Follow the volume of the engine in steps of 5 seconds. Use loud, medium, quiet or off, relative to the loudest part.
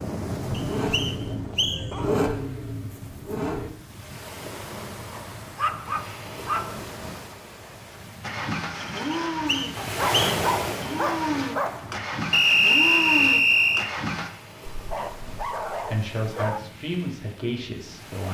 loud, loud, loud, off.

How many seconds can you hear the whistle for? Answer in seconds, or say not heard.
4 s.